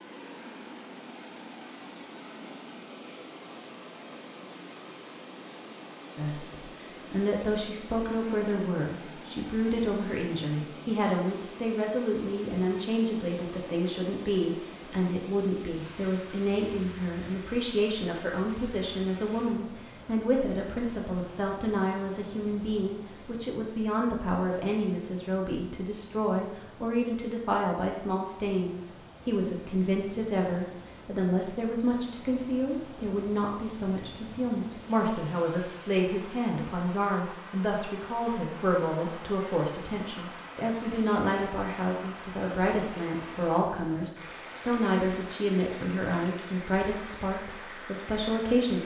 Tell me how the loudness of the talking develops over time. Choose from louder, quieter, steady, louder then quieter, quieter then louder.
steady.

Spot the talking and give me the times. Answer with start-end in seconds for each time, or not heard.
6.2-48.8.